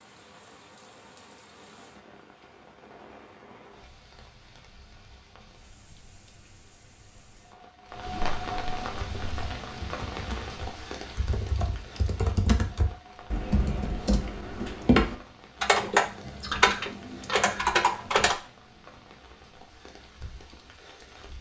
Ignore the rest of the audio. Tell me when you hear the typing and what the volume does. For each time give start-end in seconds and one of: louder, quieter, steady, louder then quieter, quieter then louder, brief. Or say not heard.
9.0-18.4 louder.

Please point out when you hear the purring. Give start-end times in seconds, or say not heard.
not heard.